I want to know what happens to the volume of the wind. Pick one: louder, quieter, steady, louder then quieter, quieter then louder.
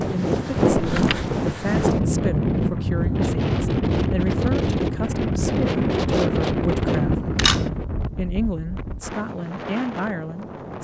quieter.